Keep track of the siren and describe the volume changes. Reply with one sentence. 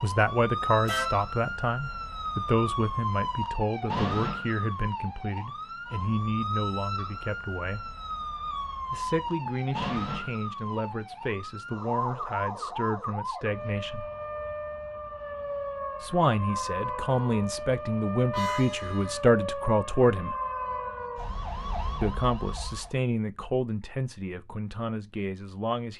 The volume of the siren stays about the same.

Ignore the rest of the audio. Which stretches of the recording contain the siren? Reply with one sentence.
The siren can be heard from 0.0 to 22.9 s.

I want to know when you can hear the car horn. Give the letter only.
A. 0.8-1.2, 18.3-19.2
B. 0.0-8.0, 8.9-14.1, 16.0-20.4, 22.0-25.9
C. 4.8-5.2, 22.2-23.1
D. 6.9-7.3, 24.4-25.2
A.